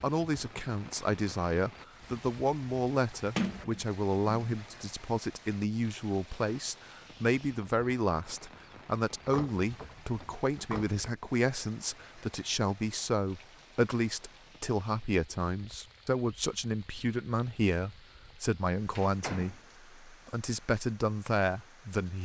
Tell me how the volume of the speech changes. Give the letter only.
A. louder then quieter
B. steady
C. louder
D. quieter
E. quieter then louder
B.